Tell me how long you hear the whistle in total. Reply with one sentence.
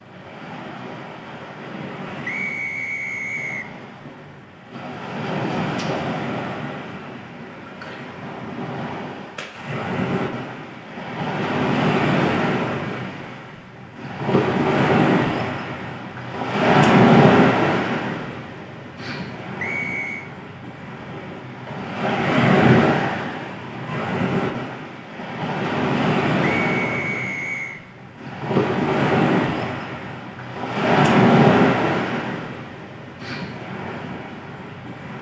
The whistle can be heard for 3 seconds in total.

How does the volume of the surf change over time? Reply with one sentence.
The loudness of the surf goes up.